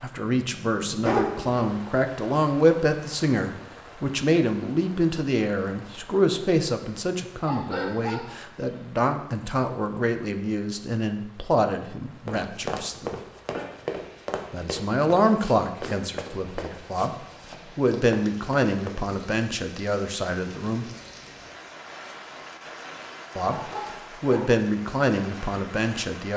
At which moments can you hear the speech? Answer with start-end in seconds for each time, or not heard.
0.0-13.2, 14.5-20.9, 23.4-26.3.